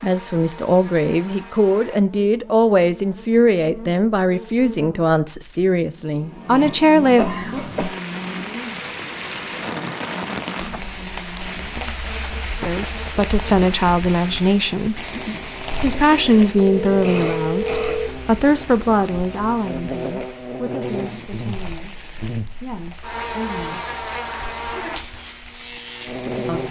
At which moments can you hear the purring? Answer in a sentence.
The purring can't be heard in this clip.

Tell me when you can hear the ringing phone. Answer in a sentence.
You can hear the ringing phone from 8.6 to 10.1 s and from 16.6 to 18.1 s.